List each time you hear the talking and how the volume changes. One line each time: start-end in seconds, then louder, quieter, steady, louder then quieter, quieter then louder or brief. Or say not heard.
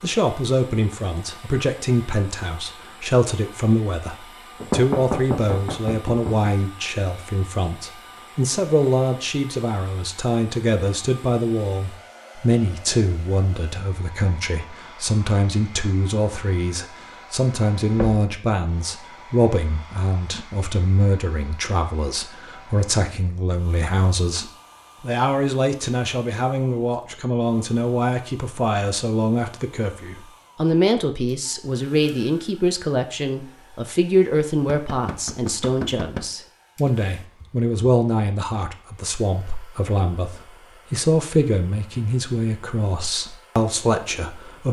0.0-44.6 steady.